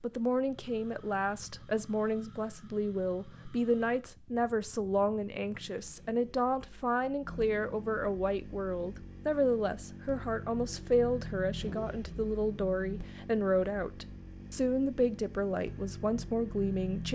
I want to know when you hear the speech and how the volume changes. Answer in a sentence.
The speech can be heard from 0.0 to 17.0 s, at a steady volume.